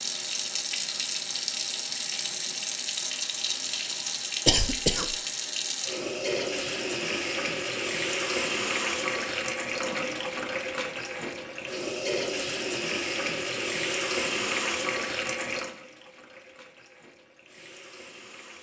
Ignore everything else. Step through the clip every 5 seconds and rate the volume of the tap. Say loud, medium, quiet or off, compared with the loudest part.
loud, loud, loud, medium.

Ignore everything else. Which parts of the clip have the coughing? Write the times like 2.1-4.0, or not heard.
4.5-5.2.